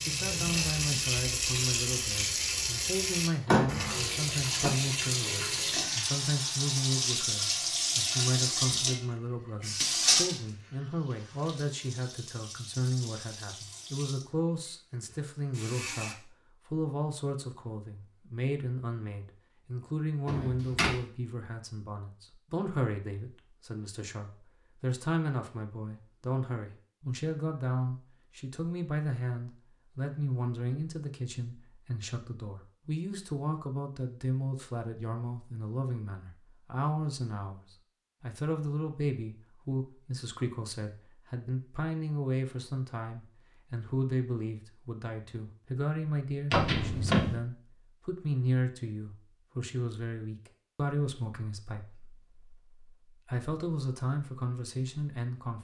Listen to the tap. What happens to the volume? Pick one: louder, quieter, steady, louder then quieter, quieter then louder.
quieter.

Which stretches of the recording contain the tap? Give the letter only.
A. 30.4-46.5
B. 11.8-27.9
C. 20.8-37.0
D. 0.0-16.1
D.